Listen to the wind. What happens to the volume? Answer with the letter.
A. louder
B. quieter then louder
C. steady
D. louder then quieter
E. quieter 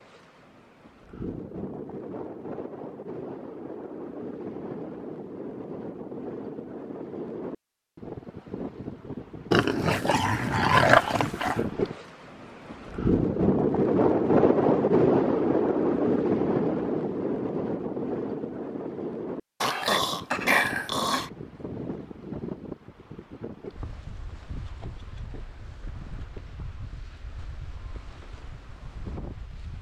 D.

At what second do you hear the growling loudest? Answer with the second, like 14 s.
11 s.